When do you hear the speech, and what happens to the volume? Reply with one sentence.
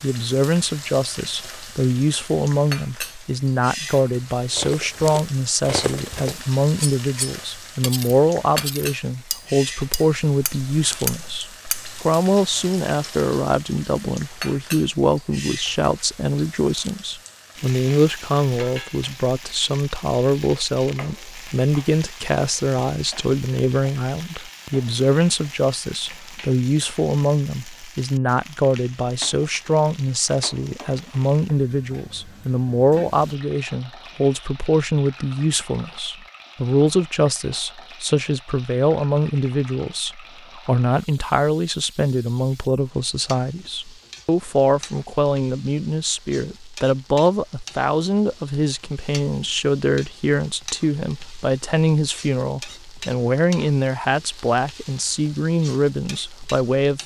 The speech can be heard from 0.0 to 57.0 s, at a steady volume.